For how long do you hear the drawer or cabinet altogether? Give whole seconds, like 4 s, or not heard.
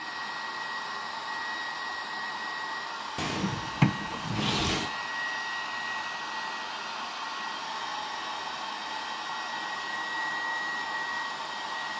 2 s.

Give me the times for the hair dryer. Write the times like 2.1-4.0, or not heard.
0.0-11.9.